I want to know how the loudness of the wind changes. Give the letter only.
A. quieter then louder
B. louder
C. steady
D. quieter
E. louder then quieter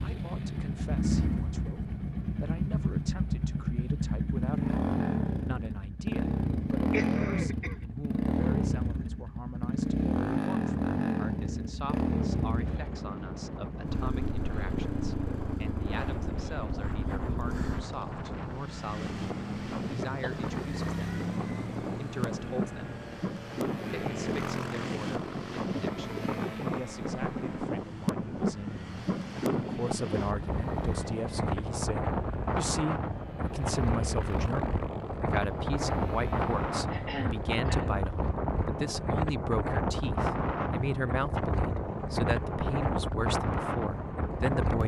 B.